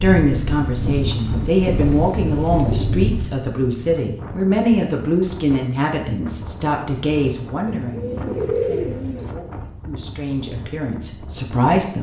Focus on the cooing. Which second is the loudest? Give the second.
9 s.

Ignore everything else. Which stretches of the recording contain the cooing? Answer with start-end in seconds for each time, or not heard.
1.3-3.1, 7.7-9.3.